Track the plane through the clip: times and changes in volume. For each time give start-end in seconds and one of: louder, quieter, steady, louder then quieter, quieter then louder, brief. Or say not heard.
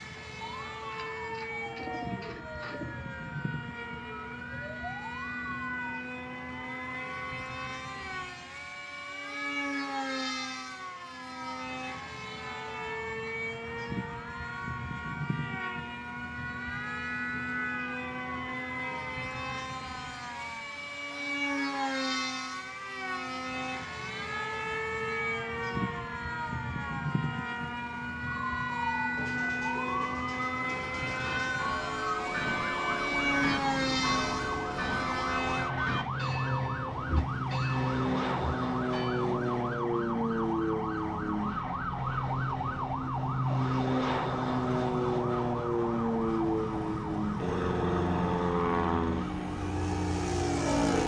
0.0-51.0 louder.